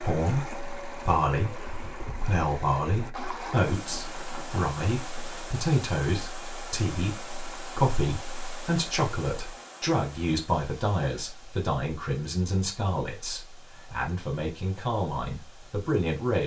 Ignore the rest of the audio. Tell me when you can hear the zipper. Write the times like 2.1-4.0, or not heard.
3.8-5.5.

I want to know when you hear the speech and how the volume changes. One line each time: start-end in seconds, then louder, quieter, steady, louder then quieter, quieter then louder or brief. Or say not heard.
0.0-16.4 steady.